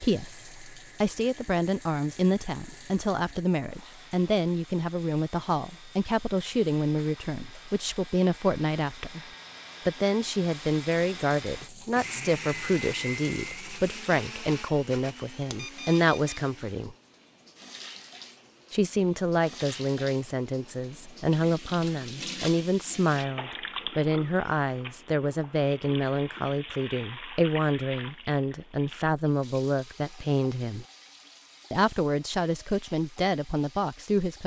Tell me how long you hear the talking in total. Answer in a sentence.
The talking can be heard for 31 seconds in total.